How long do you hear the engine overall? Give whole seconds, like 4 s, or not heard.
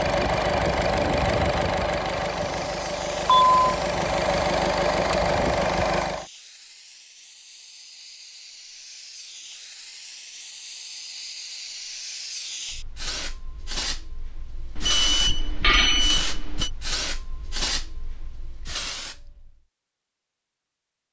6 s.